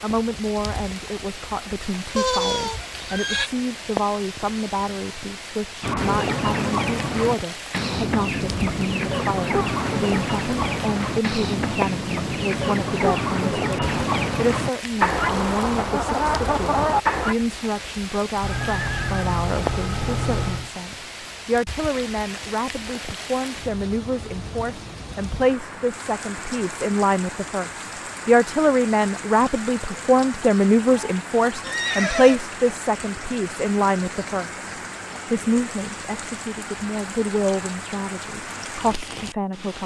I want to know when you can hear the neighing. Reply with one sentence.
You can hear the neighing from 2.1 to 3.5 s, from 18.4 to 20.7 s and from 31.6 to 32.5 s.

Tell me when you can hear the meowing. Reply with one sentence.
The meowing can't be heard in this clip.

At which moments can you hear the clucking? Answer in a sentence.
The clucking can be heard from 5.8 to 17.4 s.